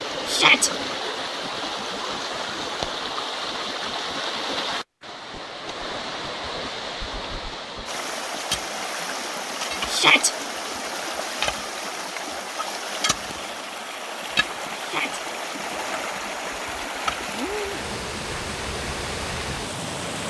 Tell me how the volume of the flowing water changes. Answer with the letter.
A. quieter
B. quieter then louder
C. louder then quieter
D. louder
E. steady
E.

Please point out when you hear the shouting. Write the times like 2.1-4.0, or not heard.
0.2-0.7, 9.8-10.3, 14.8-15.2.